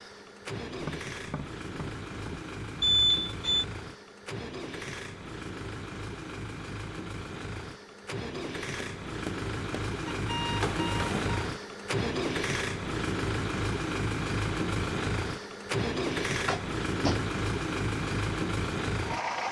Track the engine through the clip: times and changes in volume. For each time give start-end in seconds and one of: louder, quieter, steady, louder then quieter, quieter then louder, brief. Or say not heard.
0.0-19.4 louder.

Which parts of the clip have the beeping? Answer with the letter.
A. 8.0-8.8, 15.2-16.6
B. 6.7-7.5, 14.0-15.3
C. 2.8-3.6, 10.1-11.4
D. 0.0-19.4
C.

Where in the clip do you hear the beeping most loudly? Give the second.
3 s.